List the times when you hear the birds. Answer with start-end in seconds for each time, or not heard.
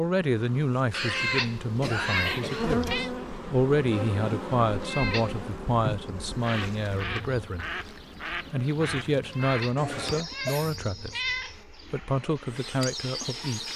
6.3-13.7.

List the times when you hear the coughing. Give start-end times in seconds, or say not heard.
0.9-2.8, 5.7-6.1, 9.8-10.8.